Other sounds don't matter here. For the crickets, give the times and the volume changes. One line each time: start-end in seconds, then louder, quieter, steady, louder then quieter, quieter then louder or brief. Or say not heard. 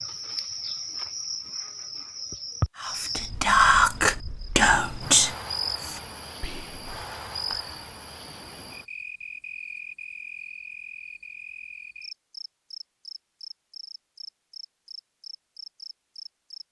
0.0-16.6 quieter.